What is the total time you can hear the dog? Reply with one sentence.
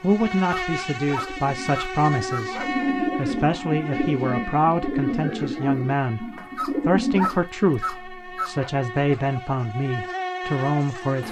You can hear the dog for 5 seconds altogether.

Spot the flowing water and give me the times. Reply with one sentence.
You can't hear the flowing water here.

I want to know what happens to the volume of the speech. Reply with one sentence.
The volume of the speech stays about the same.